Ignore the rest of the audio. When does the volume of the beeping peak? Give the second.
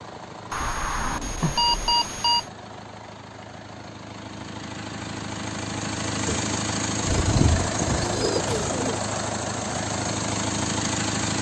2 s.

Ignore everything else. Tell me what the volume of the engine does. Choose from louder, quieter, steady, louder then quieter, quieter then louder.
louder.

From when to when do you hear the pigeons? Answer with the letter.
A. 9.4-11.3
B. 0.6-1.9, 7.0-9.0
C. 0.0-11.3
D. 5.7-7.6
B.